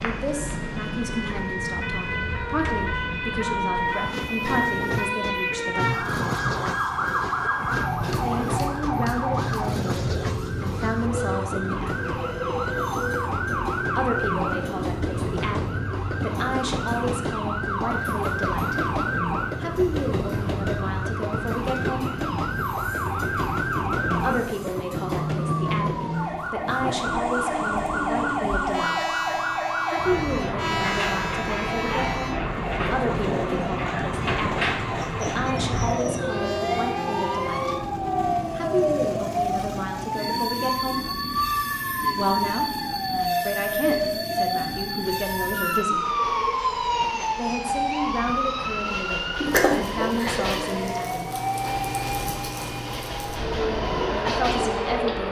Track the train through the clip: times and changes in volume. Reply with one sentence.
You can hear the train from 0.0 to 55.2 s, at a steady volume.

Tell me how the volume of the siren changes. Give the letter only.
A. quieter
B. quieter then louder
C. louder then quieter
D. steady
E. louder
D.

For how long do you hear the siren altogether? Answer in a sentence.
The siren can be heard for 55 seconds in total.